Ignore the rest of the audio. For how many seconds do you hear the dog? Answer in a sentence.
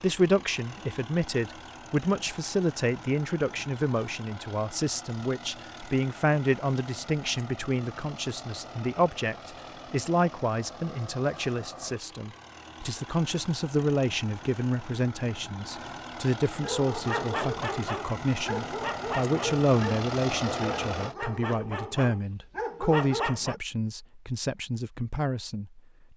You can hear the dog for 7 seconds altogether.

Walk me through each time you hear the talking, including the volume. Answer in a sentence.
You can hear the talking from 0.0 to 25.8 s, at a steady volume.